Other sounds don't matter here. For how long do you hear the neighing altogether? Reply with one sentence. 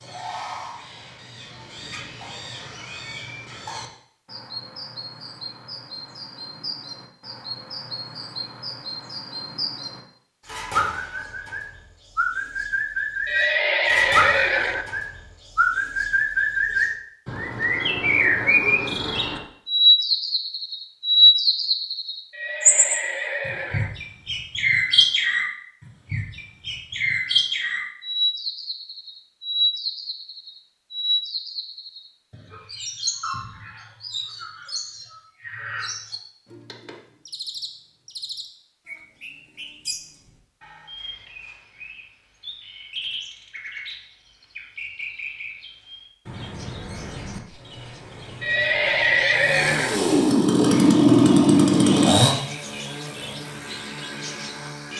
The neighing can be heard for 5 seconds in total.